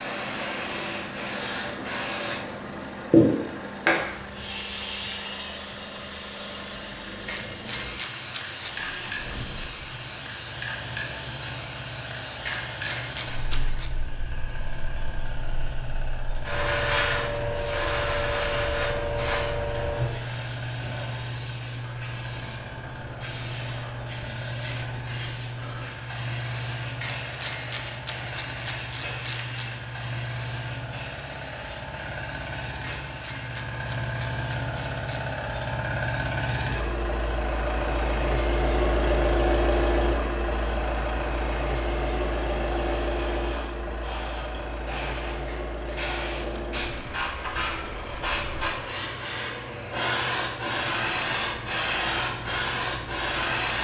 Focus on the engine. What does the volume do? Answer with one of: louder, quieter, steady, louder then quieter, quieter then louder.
louder then quieter.